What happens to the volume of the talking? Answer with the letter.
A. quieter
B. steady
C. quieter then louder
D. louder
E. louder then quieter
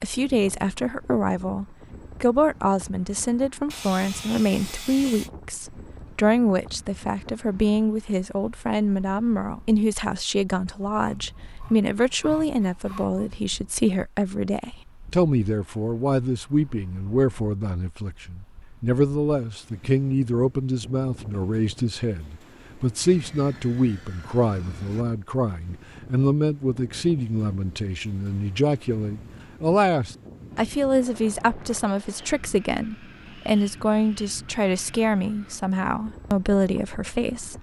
B.